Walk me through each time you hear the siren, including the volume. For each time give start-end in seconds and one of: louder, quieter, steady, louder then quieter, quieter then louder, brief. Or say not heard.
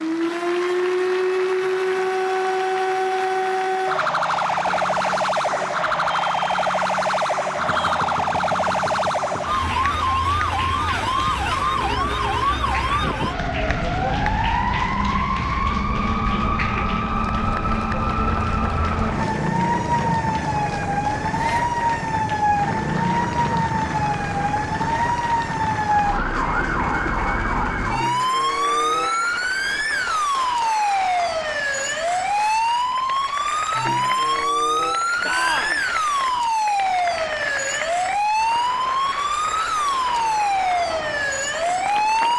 0.0-42.3 steady.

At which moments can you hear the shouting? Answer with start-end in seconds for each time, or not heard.
7.7-8.1, 21.3-21.8, 35.2-35.8.